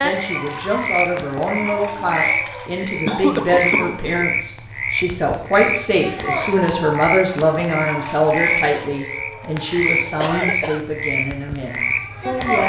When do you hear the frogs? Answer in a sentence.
The frogs can be heard from 0.0 to 12.6 s.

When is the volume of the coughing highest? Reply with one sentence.
The loudest moment of the coughing is at 3 seconds.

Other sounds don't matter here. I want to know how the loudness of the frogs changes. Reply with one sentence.
The loudness of the frogs stays about the same.